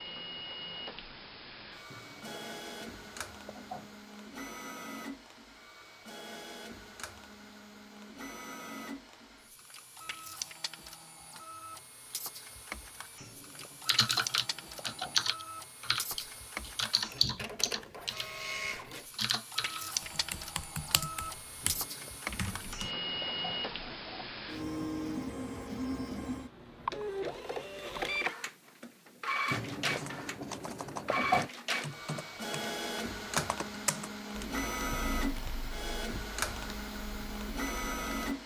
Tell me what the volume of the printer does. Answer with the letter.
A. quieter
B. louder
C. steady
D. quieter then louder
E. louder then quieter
B.